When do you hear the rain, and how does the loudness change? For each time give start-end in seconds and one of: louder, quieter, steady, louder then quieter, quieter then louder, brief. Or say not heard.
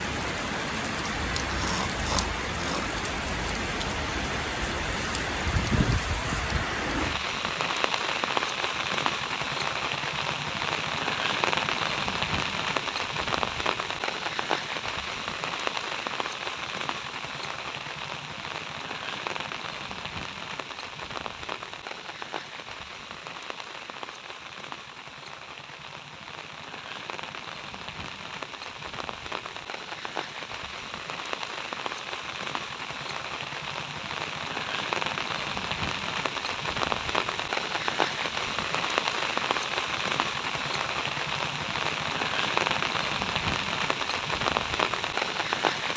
0.0-45.9 quieter then louder.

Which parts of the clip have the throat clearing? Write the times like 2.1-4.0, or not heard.
1.4-2.9.